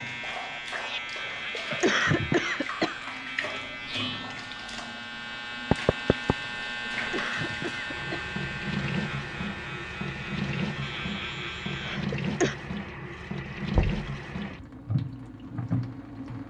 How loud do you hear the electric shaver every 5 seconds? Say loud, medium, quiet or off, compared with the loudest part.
loud, loud, loud, off.